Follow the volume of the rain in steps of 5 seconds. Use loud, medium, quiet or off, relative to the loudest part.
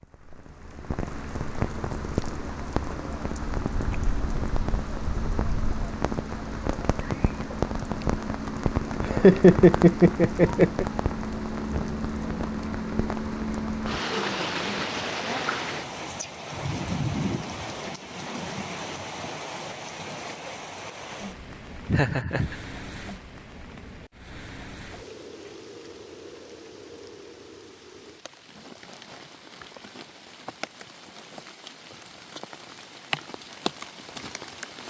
loud, loud, loud, loud, medium, quiet, medium.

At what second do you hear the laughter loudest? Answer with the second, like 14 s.
9 s.